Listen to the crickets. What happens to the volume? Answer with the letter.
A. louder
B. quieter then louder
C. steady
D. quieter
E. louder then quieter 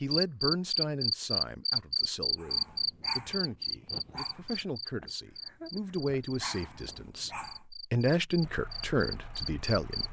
B.